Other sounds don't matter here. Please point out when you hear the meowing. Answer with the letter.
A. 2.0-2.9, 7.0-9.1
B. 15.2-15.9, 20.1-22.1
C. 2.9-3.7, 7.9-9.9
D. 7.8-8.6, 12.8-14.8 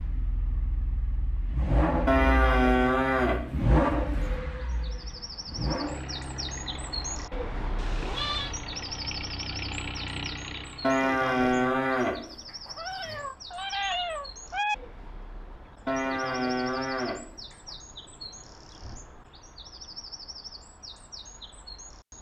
D.